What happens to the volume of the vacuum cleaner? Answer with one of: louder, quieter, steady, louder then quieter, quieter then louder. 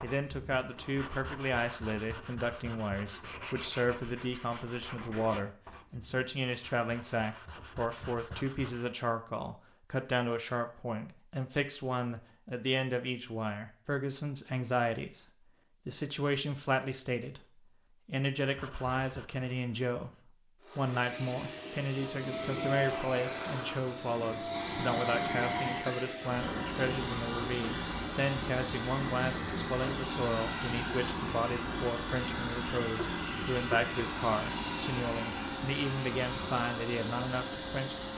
steady.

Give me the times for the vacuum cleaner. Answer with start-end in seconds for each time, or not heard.
20.6-38.1.